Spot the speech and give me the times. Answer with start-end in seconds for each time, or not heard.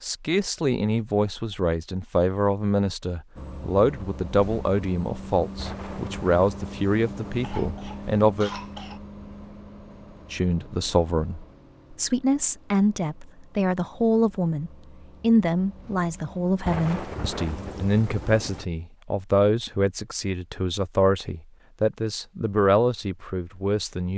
0.0-8.5, 10.3-24.1.